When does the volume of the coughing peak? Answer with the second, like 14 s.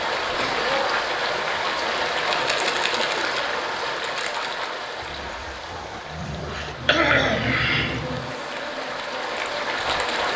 7 s.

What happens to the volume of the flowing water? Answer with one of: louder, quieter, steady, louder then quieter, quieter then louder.
quieter then louder.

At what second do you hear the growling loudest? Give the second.
6 s.